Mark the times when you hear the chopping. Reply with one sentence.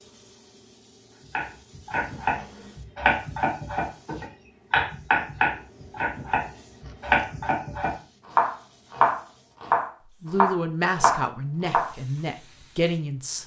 The chopping can be heard from 1.3 to 11.9 s.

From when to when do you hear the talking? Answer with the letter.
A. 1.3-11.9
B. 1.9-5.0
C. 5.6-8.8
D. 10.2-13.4
D.